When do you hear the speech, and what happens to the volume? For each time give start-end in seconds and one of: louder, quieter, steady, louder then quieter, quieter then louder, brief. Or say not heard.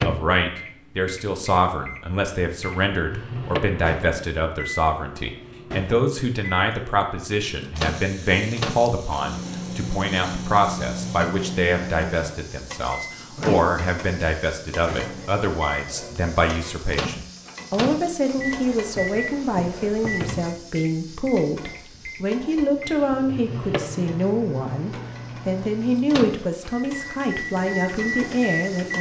0.0-28.9 steady.